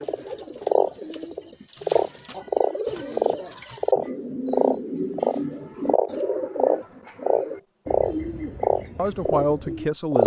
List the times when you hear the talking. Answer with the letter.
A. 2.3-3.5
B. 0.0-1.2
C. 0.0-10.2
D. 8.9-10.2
D.